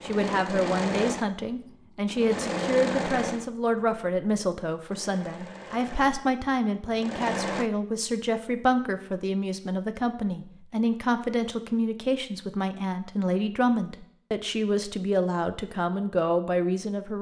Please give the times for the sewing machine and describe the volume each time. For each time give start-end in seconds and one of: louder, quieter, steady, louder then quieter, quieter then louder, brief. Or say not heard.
0.0-7.7 quieter then louder.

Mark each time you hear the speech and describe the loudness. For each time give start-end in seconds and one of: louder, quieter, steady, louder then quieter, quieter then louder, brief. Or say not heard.
0.0-17.1 steady.